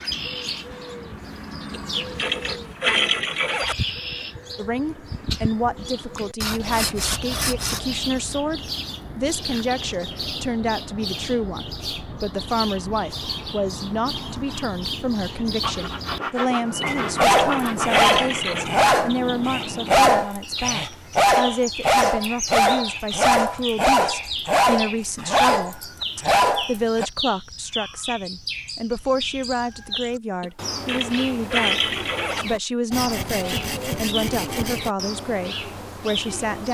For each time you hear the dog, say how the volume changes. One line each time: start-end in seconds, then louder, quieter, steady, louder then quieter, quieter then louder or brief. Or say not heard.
16.9-27.1 steady.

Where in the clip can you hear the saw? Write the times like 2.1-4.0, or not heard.
6.4-7.9, 15.6-18.1, 32.9-34.9.